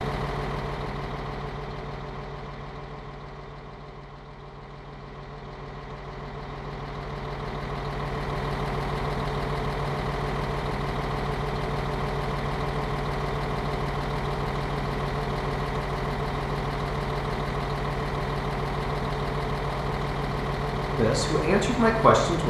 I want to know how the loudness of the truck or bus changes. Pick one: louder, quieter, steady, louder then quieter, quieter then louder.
louder.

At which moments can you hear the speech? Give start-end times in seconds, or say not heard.
20.9-22.4.